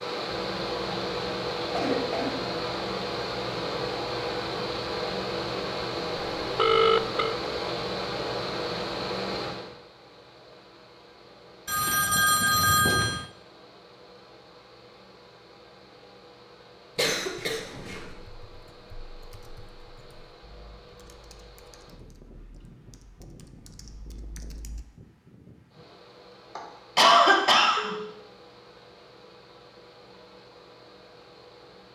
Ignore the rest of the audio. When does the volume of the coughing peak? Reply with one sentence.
The loudest moment of the coughing is at 27 seconds.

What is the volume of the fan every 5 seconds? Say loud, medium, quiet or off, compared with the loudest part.
loud, loud, quiet, quiet, quiet, quiet, quiet.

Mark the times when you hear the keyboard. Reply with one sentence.
You can hear the keyboard from 18.1 to 24.9 s.